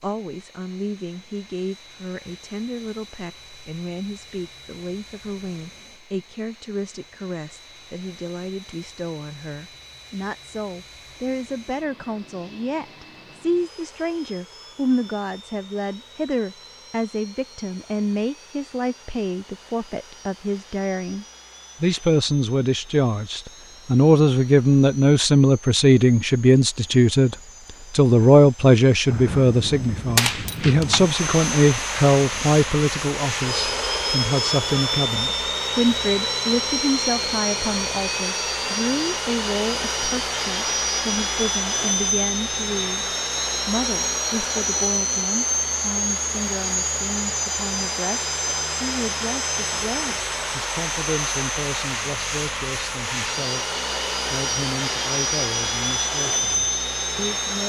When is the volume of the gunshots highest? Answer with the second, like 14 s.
30 s.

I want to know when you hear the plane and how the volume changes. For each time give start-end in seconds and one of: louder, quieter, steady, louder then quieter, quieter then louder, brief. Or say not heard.
0.0-57.6 louder.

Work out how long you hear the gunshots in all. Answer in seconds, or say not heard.
2 s.